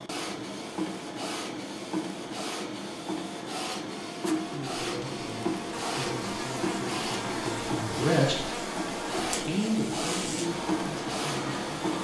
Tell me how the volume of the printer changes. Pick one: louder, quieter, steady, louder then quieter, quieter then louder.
steady.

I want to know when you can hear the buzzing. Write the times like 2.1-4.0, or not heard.
5.7-11.9.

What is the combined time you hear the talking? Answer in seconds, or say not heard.
7 s.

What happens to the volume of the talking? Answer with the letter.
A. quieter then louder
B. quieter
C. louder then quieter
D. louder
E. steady
C.